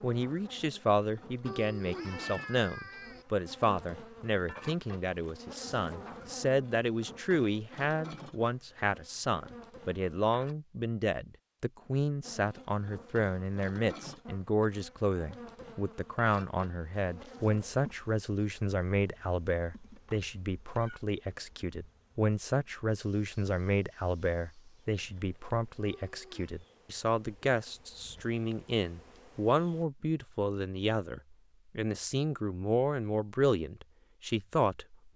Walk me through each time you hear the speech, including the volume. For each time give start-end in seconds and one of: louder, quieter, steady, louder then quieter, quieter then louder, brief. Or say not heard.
0.0-35.1 steady.